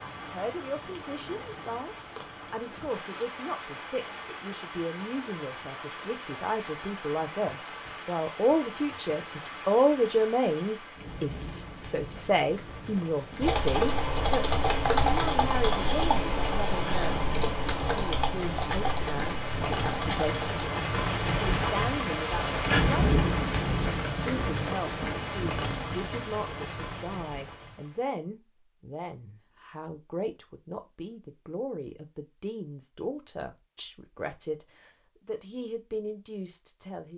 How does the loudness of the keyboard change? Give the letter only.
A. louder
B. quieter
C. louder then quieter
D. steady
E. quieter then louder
B.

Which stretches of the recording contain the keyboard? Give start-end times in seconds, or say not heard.
13.4-20.6.